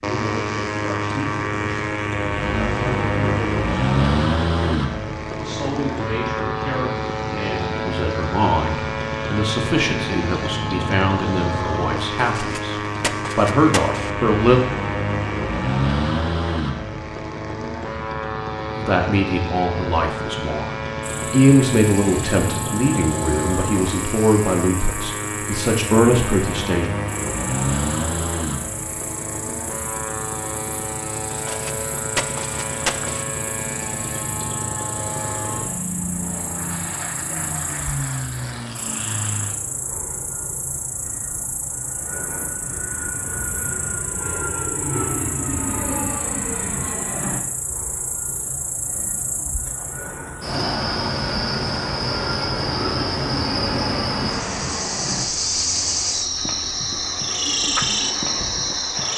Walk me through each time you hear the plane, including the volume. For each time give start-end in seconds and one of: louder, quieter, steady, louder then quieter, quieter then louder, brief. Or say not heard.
0.0-59.1 quieter.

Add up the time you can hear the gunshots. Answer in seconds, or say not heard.
4 s.